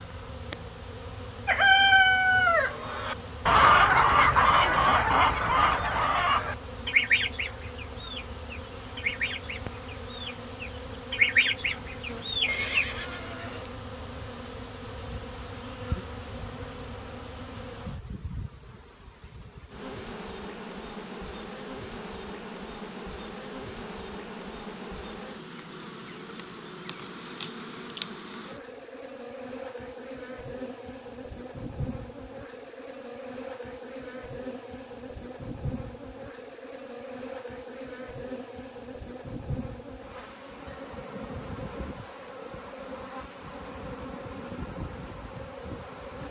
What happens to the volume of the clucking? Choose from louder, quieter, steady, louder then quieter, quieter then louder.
quieter then louder.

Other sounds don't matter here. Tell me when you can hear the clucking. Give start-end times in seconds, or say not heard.
1.4-12.8.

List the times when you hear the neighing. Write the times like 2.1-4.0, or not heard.
12.4-13.7.